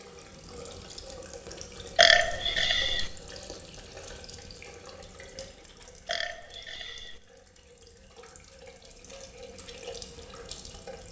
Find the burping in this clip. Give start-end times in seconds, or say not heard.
1.9-3.1, 6.0-7.2.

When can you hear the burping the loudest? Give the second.
2 s.